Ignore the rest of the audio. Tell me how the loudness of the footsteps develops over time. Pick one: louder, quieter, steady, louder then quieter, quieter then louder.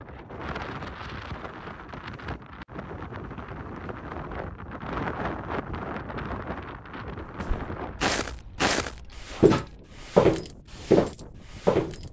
louder.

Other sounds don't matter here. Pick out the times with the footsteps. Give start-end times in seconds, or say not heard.
7.2-12.0.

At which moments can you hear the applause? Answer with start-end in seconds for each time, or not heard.
not heard.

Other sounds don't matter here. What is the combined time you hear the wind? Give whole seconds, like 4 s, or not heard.
12 s.